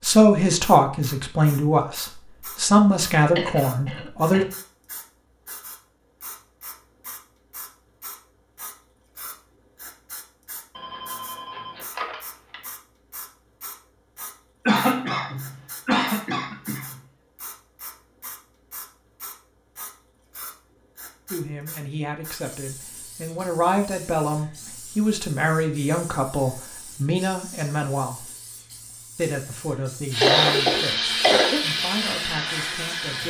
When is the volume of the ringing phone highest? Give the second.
12 s.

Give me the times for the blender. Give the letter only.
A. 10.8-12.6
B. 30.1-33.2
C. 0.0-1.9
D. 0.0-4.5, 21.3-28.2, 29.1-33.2
B.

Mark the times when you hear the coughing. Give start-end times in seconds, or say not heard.
3.2-4.5, 14.7-17.0, 30.2-31.6.